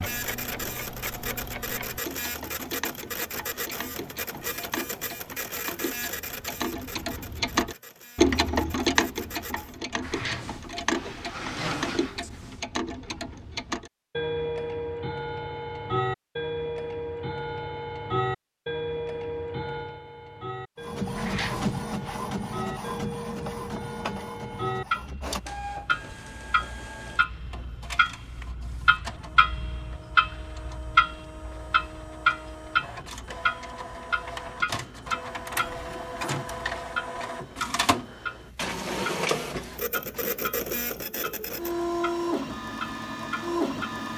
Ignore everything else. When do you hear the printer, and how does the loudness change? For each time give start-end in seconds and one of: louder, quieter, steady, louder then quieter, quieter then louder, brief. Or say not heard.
0.0-9.8 quieter
20.8-44.1 quieter then louder.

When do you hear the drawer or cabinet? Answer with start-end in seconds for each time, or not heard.
10.0-12.6, 21.1-22.2, 39.5-40.4.